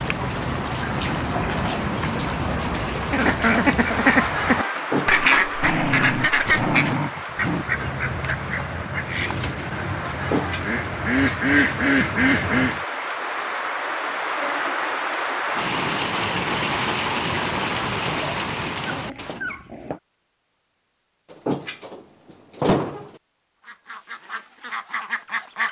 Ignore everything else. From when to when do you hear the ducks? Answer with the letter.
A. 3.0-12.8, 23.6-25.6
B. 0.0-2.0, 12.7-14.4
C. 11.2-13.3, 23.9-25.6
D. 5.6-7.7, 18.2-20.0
A.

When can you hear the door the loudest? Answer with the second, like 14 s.
23 s.